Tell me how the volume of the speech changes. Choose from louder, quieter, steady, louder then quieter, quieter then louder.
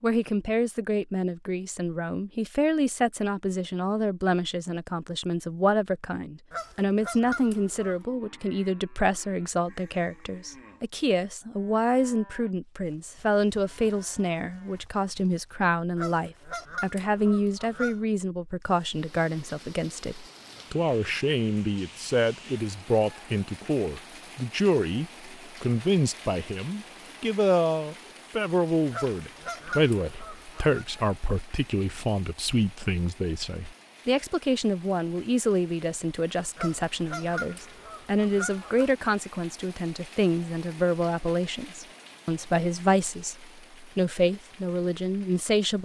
steady.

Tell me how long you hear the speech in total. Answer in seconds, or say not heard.
46 s.